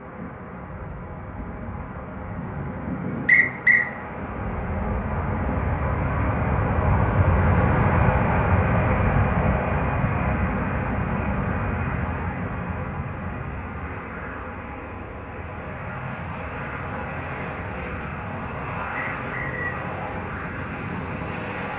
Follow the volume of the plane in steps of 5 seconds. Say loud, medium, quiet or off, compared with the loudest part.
medium, loud, medium, medium, medium.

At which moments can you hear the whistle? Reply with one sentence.
You can hear the whistle from 3.2 to 3.9 s and from 18.9 to 19.8 s.